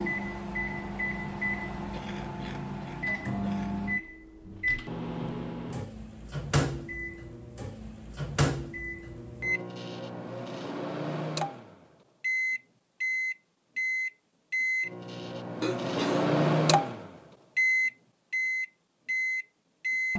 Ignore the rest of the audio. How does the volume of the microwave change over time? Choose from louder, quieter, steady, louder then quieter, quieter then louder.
louder.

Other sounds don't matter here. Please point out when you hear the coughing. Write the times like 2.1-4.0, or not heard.
1.9-3.8, 15.6-16.3.